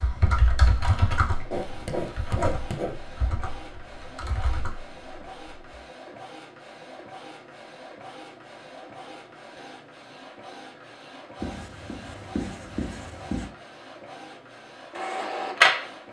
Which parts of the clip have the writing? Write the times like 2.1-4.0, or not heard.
1.5-3.0, 11.4-13.5.